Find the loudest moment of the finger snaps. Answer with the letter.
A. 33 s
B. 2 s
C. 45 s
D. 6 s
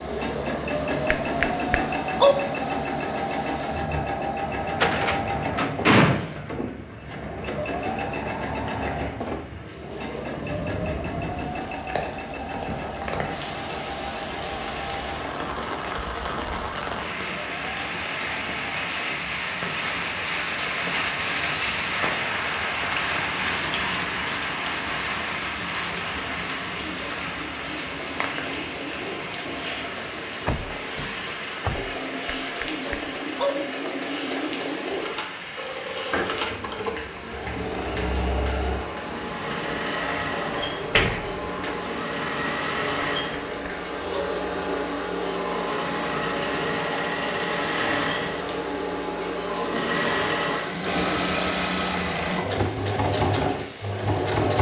B.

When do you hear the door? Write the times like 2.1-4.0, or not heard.
4.7-6.3, 30.4-31.9, 40.6-41.8.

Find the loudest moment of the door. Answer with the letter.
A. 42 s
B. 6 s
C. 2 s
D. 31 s
B.